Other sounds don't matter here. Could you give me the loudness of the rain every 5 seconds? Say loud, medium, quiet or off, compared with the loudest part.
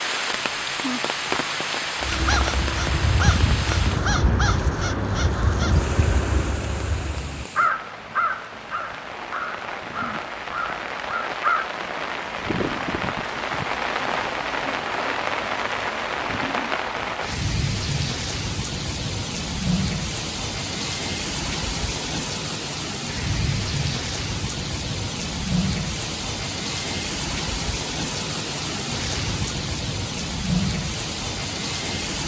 loud, medium, loud, loud, loud, loud, loud.